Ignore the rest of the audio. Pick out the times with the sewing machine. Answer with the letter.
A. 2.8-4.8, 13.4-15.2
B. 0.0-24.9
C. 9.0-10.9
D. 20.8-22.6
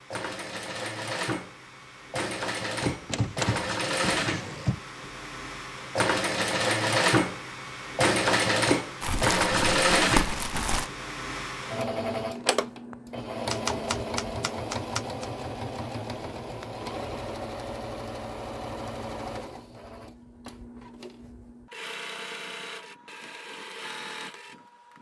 B.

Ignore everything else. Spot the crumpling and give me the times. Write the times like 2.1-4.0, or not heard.
9.0-10.9.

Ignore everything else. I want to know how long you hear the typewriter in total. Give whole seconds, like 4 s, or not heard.
4 s.